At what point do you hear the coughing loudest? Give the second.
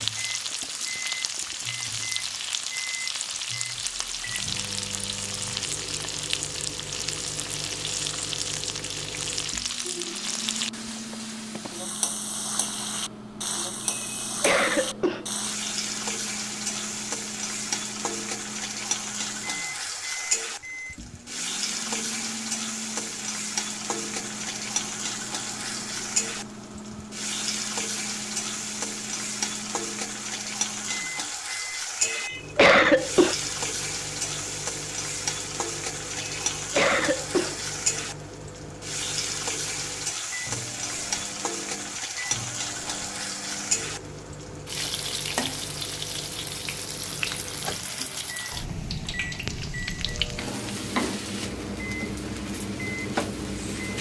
33 s.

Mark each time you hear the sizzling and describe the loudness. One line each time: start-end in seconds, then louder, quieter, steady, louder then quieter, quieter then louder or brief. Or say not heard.
0.0-53.9 steady.